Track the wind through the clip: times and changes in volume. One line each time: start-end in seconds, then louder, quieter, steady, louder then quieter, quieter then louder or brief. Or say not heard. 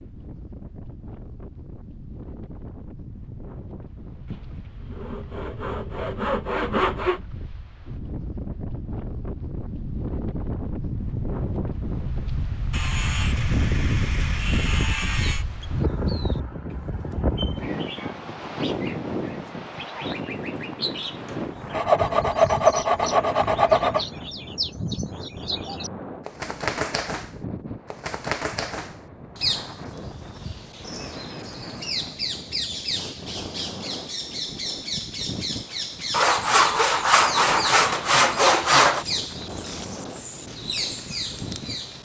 0.0-42.0 louder then quieter.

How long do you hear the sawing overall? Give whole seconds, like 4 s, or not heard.
11 s.